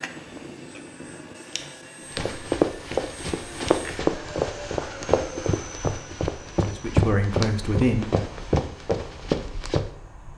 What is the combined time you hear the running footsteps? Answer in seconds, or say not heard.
8 s.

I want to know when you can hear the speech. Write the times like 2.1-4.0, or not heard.
6.6-8.2.